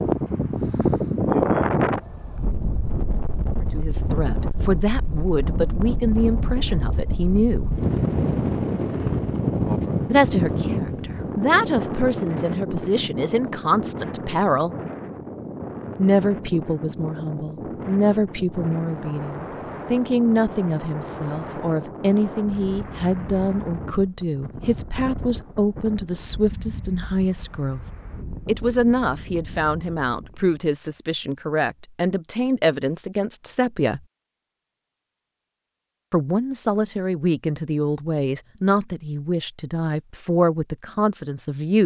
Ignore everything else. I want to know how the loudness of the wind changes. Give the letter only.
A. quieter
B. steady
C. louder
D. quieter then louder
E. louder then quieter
A.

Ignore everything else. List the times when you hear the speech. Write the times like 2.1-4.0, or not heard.
3.8-7.8, 10.1-14.8, 15.9-27.9, 28.4-34.0, 36.1-41.8.